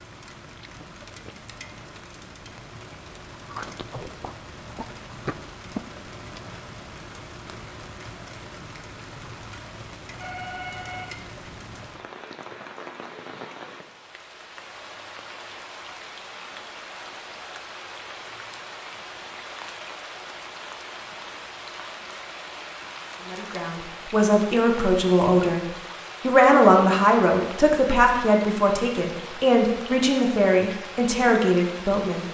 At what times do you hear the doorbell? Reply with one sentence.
The doorbell can be heard from 10.2 to 11.2 s.